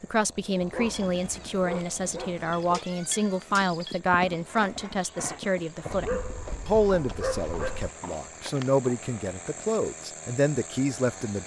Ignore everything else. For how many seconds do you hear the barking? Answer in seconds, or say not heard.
4 s.